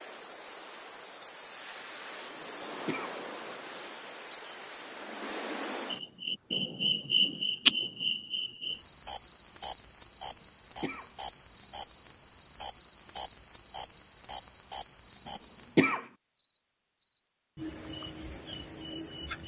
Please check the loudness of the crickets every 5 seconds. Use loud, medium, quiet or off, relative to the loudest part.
medium, loud, loud, loud.